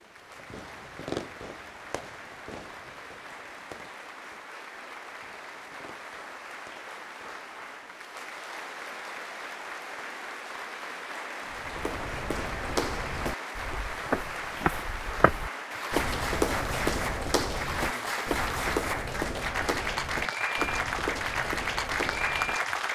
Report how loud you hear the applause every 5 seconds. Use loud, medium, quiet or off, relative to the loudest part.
quiet, medium, medium, loud, loud.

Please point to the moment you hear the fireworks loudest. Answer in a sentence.
The loudest moment of the fireworks is at 1 second.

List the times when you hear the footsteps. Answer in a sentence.
The footsteps can be heard from 11.5 to 22.6 s.